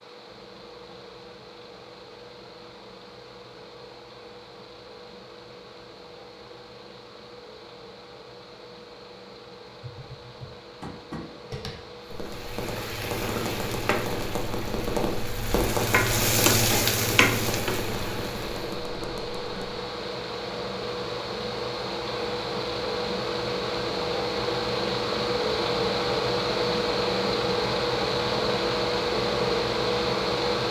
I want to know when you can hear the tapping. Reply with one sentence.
You can hear the tapping from 9.8 to 19.8 s.